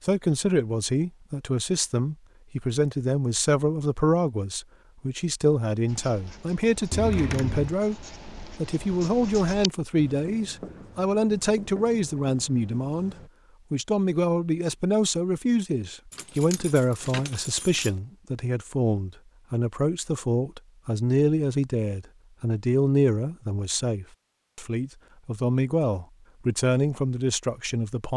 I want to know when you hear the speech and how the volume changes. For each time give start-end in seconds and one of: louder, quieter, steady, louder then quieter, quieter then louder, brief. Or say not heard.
0.0-8.0 steady
8.6-28.1 steady.